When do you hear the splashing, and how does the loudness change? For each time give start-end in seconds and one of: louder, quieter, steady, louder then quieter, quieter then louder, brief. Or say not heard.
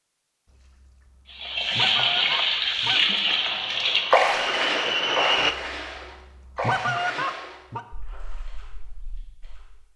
1.4-9.8 quieter.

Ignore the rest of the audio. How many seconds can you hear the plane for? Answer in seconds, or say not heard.
2 s.